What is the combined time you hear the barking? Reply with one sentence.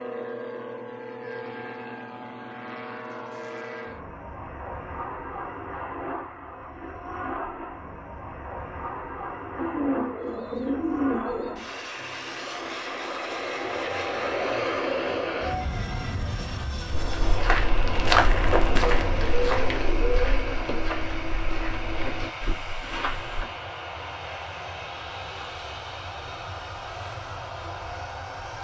You can't hear the barking here.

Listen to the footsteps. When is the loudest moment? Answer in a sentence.
The loudest moment of the footsteps is at 18 seconds.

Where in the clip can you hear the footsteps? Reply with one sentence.
You can hear the footsteps from 16.9 to 23.4 s.